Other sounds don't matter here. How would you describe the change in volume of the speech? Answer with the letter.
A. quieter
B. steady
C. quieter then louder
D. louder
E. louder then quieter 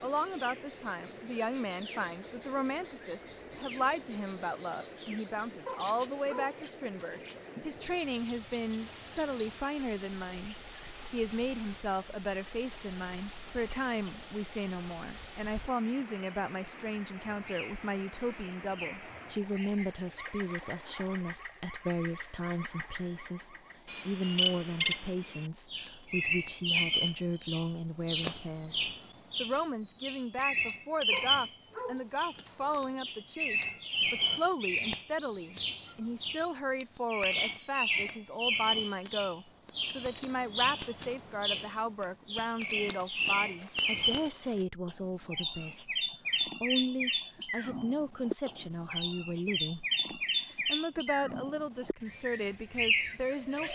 B.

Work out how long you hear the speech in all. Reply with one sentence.
You can hear the speech for 54 seconds altogether.